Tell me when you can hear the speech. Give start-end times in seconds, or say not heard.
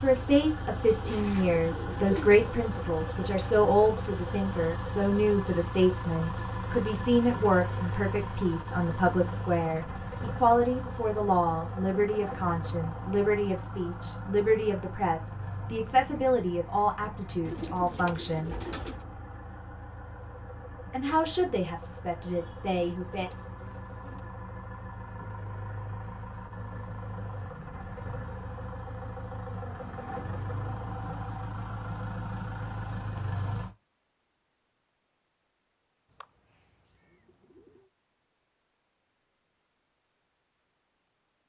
0.0-18.6, 20.9-23.3.